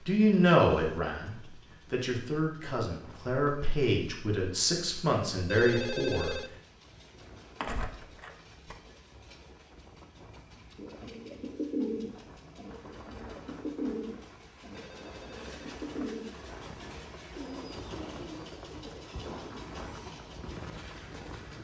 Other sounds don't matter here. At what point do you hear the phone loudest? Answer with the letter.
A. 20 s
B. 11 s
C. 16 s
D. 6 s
D.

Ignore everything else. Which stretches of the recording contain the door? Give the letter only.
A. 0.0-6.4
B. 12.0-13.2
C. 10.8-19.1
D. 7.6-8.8
D.